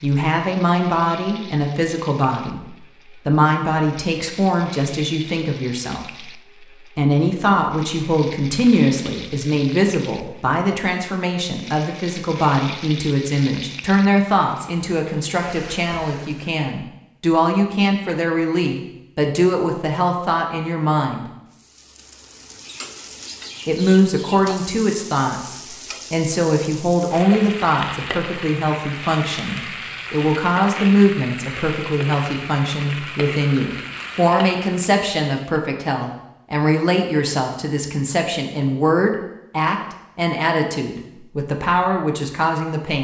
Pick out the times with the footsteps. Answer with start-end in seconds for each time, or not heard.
not heard.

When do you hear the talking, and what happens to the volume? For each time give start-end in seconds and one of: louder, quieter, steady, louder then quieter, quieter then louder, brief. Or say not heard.
0.0-21.2 steady
23.6-42.9 steady.